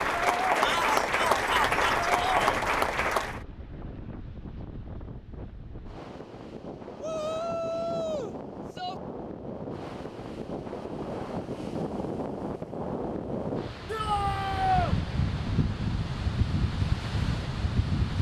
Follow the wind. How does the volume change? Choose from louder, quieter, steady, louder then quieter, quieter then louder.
louder.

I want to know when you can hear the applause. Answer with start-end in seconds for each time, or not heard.
0.0-3.4.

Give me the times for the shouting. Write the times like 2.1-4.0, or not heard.
0.6-2.5, 7.0-8.9, 13.8-14.9.